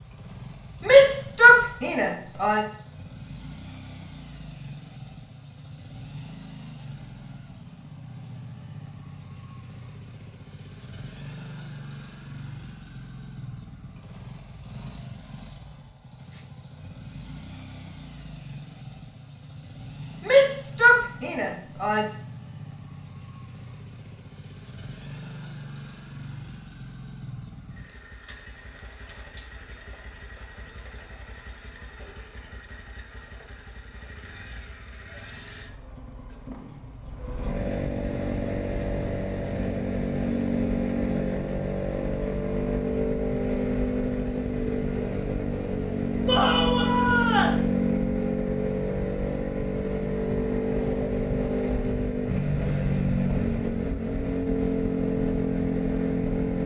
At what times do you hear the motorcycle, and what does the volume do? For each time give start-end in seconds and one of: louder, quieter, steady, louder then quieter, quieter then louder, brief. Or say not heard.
0.0-56.6 louder.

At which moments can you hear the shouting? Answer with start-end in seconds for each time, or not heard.
0.8-2.6, 20.2-22.1, 46.2-47.6.